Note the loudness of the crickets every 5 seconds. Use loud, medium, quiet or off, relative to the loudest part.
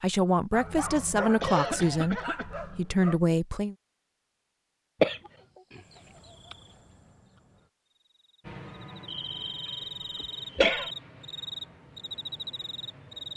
off, medium, loud.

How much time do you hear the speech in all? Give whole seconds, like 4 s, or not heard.
4 s.